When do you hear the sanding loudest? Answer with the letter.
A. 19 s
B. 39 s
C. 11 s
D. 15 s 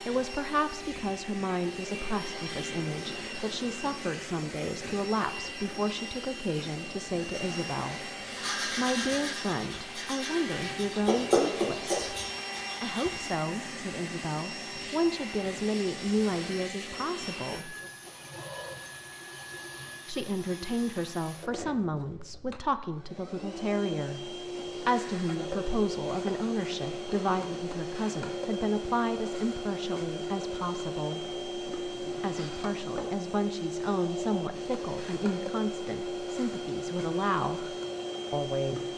C.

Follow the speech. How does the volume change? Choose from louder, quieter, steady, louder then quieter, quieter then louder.
steady.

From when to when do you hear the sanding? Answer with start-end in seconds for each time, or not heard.
7.9-13.3.